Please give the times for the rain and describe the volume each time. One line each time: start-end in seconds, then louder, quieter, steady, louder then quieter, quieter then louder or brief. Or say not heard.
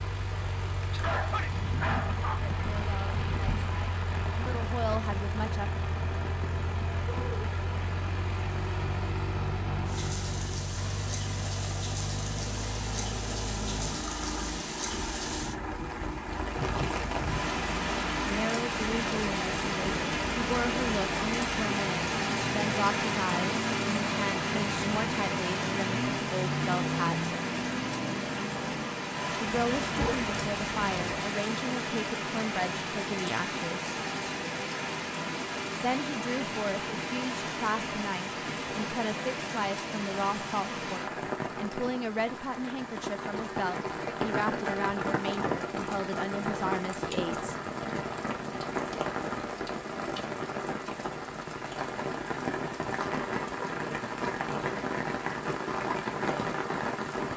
0.0-57.3 louder.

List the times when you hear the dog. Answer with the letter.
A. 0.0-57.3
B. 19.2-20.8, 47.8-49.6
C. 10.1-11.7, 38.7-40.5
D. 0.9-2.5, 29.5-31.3
D.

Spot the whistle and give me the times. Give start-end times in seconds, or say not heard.
not heard.